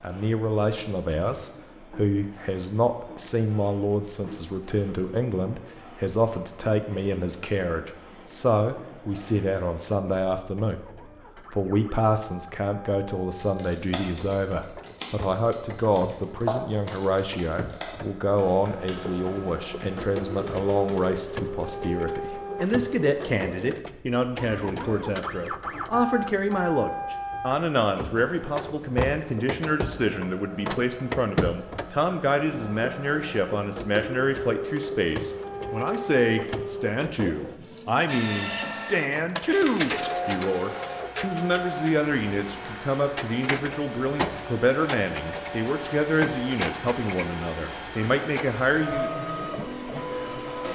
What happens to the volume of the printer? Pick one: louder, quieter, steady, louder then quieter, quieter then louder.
louder.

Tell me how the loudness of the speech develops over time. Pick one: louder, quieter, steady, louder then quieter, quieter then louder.
steady.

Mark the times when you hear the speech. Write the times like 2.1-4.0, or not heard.
0.0-10.8, 11.5-49.1.